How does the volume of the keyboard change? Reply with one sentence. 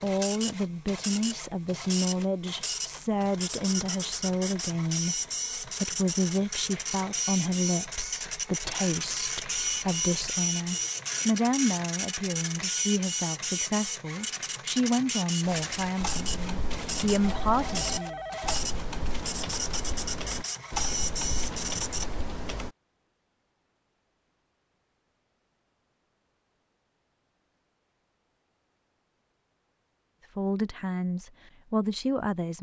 The loudness of the keyboard stays about the same.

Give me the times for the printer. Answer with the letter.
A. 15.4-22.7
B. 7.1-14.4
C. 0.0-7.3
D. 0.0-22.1
D.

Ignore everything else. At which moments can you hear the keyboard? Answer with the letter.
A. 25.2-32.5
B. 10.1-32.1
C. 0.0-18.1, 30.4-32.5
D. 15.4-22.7
D.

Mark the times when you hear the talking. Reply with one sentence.
The talking can be heard from 0.0 to 18.1 s and from 30.4 to 32.5 s.